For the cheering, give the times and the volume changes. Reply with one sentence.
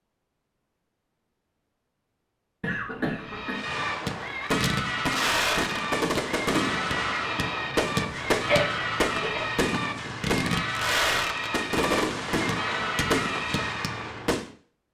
You can hear the cheering from 3.1 to 14.1 s, at a steady volume.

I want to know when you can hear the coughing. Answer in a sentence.
The coughing can be heard from 2.6 to 3.6 s and from 8.3 to 9.5 s.